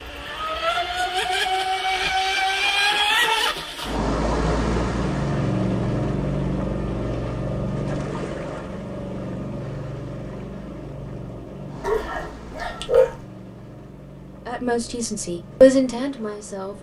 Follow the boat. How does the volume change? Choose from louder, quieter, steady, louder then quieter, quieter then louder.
quieter.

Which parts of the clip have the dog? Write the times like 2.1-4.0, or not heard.
11.8-13.2.